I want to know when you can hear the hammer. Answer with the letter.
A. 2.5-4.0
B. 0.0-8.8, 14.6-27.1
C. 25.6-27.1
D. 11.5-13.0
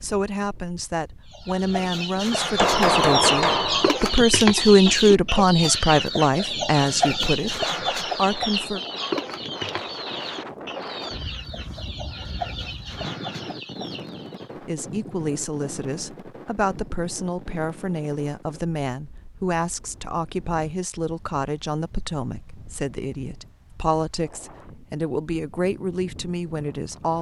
A.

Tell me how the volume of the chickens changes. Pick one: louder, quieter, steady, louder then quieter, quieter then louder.
quieter.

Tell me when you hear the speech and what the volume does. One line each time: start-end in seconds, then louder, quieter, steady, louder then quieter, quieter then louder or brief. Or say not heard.
0.0-8.8 louder then quieter
14.6-27.1 steady.